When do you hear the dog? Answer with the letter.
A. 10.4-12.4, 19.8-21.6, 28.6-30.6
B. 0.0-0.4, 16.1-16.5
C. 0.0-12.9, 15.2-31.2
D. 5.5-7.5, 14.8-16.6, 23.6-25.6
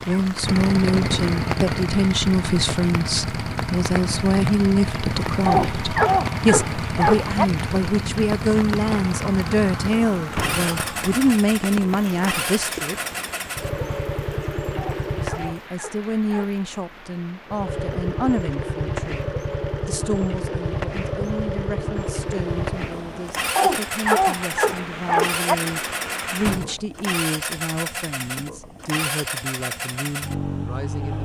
D.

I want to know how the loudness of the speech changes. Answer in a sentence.
The volume of the speech goes down.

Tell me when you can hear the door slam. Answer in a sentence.
You can hear the door slam from 10.3 to 10.8 s and from 26.4 to 26.9 s.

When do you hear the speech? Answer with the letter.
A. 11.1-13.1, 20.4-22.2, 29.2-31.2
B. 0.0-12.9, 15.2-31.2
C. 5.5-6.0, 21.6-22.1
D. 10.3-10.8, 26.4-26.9
B.